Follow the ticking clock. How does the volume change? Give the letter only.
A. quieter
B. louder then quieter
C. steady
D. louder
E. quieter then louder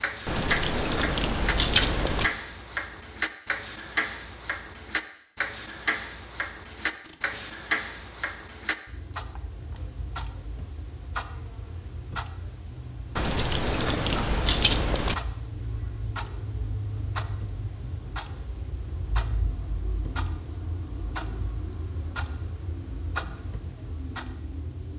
A.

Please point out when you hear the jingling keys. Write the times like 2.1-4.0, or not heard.
0.2-2.3, 13.2-15.2.